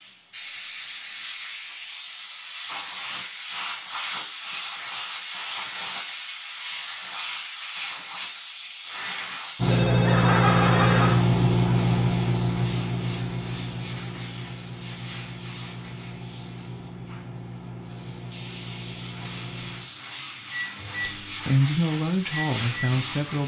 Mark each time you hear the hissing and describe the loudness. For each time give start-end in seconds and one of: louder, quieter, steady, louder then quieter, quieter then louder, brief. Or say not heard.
0.0-23.4 quieter then louder.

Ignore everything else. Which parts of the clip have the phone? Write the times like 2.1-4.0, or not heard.
9.7-11.2.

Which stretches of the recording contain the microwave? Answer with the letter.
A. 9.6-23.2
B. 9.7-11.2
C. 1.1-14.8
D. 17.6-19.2
A.